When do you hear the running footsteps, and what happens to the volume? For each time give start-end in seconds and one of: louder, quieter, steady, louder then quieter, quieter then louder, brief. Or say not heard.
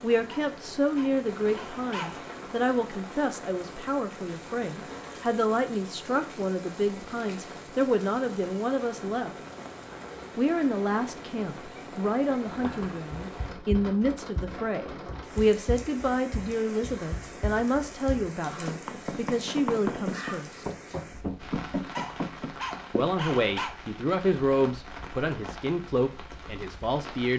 12.4-23.1 louder.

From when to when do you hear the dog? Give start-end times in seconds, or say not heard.
0.3-2.3, 21.9-23.8.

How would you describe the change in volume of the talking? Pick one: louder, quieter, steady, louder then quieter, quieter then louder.
steady.